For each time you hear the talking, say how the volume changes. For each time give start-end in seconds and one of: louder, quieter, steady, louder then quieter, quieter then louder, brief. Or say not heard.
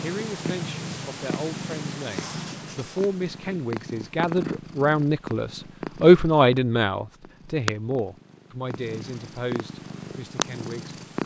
0.0-11.2 louder then quieter.